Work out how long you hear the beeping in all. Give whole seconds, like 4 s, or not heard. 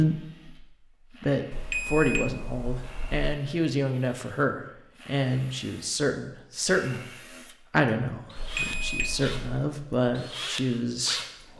3 s.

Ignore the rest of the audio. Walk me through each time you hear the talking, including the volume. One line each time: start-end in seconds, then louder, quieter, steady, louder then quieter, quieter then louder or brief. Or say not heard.
0.0-11.5 steady.